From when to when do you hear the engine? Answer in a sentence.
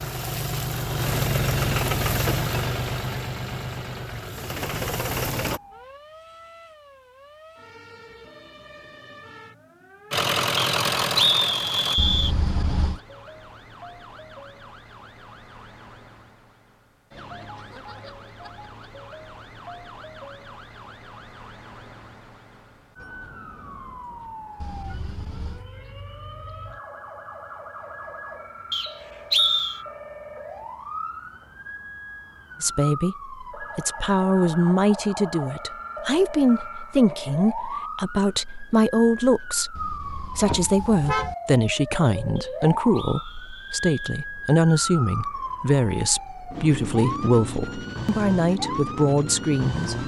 The engine can be heard from 0.0 to 5.6 s and from 10.1 to 12.0 s.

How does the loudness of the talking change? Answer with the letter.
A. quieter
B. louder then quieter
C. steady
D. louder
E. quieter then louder
C.